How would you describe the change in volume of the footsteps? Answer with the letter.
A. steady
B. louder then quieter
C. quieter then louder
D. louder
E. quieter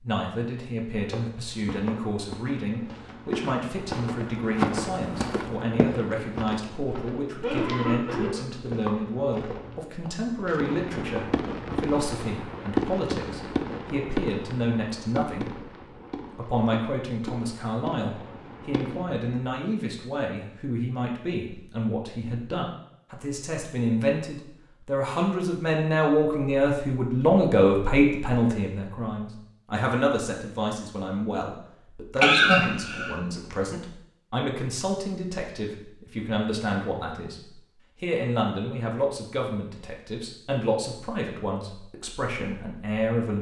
B.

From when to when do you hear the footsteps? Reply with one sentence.
The footsteps can be heard from 0.9 to 11.9 s.